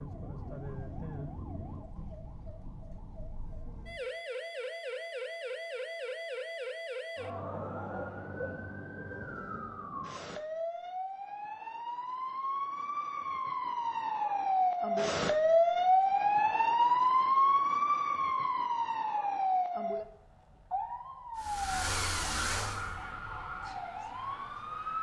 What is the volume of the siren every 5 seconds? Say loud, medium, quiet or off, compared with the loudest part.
quiet, quiet, medium, loud, quiet.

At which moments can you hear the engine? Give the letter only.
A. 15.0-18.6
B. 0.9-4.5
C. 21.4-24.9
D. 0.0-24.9
C.